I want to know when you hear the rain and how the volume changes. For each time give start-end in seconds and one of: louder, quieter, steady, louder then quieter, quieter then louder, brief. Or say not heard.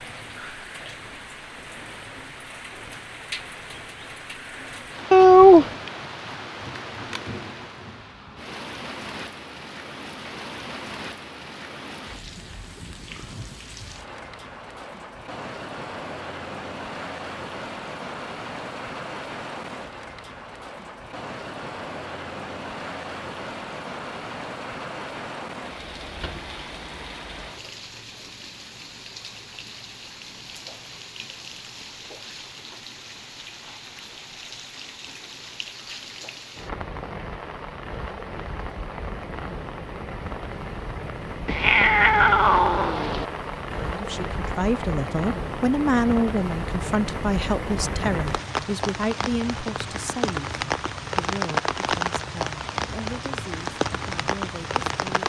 0.0-55.2 louder.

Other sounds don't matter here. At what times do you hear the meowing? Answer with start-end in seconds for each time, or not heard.
5.1-5.7, 41.5-43.2.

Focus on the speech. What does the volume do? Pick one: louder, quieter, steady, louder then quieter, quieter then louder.
quieter.